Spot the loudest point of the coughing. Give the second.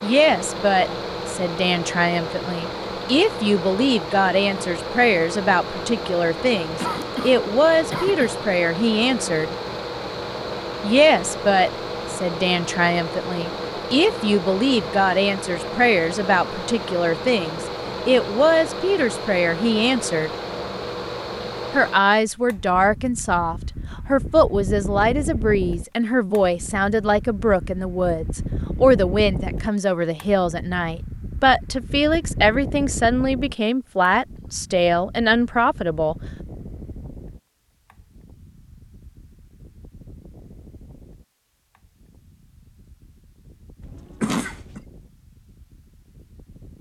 44 s.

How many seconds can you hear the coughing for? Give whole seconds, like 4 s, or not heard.
3 s.